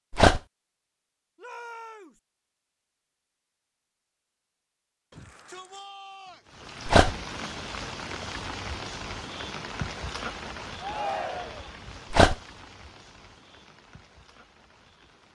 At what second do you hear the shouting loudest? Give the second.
11 s.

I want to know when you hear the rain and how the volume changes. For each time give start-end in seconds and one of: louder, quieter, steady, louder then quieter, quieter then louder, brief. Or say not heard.
6.5-15.3 quieter.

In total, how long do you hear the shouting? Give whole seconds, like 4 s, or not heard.
3 s.